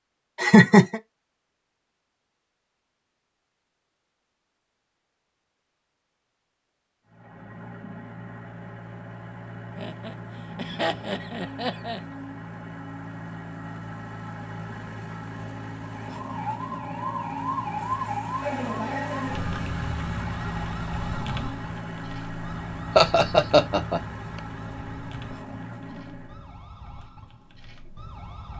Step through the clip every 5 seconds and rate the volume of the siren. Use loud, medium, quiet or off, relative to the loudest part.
off, off, off, loud, medium, quiet.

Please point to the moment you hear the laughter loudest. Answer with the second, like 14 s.
1 s.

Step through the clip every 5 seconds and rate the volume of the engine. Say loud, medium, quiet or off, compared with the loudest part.
off, medium, loud, loud, loud, medium.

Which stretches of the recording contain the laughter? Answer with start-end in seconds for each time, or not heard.
0.3-1.0, 9.8-12.0, 22.9-24.0.